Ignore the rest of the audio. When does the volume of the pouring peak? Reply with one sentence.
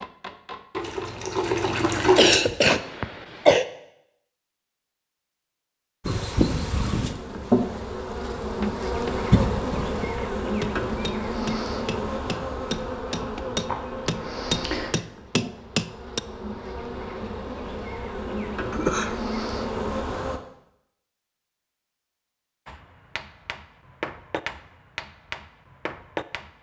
The loudest moment of the pouring is at 2 seconds.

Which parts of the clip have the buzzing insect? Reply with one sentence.
You can hear the buzzing insect from 6.0 to 20.4 s.